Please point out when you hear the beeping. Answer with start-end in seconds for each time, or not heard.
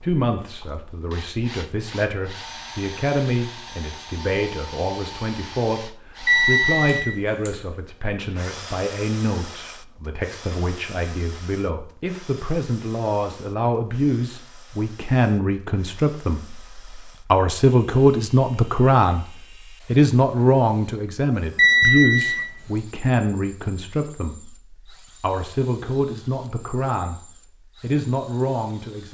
6.2-7.5, 21.6-22.4.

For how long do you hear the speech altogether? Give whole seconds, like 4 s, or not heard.
28 s.